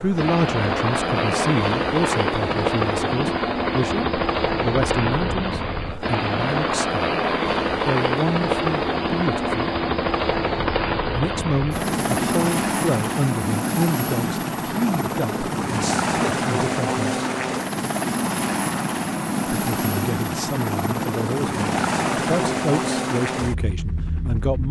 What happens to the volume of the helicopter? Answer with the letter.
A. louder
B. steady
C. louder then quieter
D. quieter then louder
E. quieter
B.